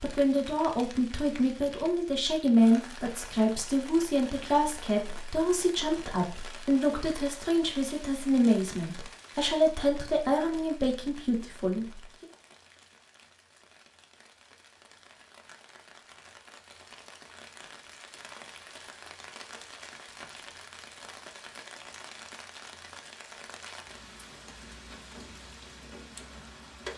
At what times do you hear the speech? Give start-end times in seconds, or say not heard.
0.0-12.2.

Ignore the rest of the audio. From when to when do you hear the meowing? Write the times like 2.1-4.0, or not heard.
not heard.